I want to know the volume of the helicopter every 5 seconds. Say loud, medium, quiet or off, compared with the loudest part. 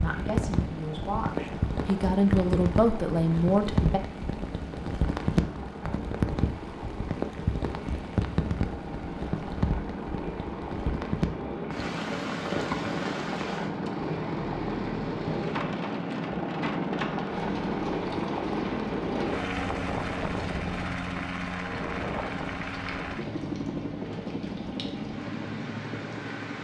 medium, medium, loud, loud, loud, medium.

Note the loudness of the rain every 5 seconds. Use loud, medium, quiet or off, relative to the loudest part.
loud, loud, loud, medium, quiet, medium.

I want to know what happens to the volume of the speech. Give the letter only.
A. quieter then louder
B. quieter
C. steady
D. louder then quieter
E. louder
E.